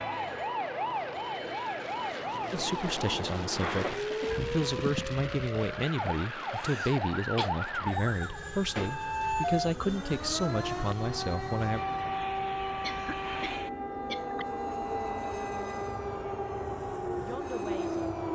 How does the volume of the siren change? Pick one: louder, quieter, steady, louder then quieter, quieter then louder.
steady.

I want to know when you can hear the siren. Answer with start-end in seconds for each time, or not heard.
0.0-18.3.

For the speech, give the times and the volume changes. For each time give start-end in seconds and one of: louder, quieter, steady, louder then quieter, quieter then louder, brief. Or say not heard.
2.5-11.8 steady
17.1-18.1 brief.